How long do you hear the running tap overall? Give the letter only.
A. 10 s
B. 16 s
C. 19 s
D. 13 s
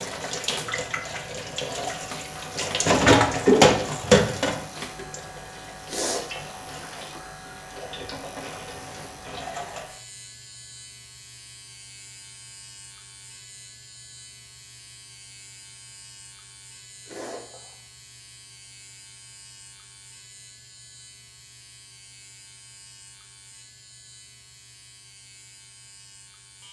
A.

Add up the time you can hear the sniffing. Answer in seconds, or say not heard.
2 s.